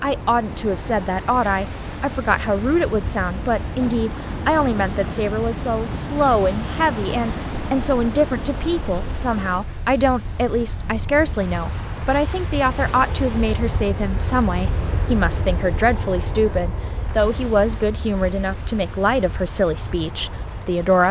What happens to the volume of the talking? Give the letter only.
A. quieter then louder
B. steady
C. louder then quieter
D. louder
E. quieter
B.